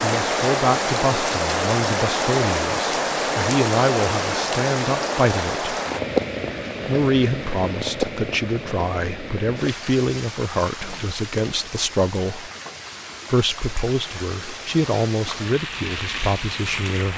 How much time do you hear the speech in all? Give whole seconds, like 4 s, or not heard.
15 s.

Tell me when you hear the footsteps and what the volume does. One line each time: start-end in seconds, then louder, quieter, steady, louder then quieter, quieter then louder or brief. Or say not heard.
not heard.